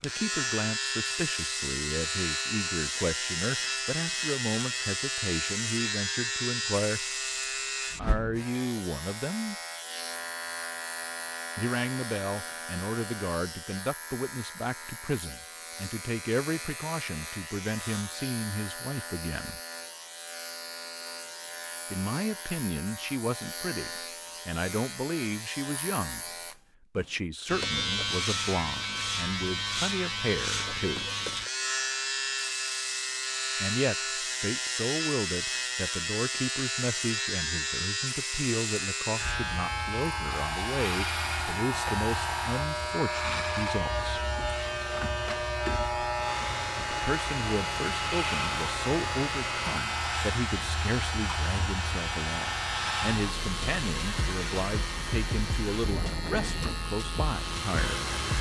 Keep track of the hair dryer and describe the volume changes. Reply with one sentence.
The loudness of the hair dryer stays about the same.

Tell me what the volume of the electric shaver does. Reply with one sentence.
The volume of the electric shaver goes down, then up.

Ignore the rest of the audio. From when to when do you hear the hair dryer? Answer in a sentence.
You can hear the hair dryer from 40.2 to 58.3 s.